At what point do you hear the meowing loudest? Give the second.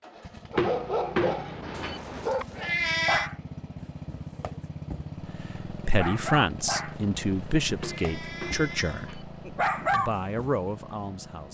3 s.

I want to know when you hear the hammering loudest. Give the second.
1 s.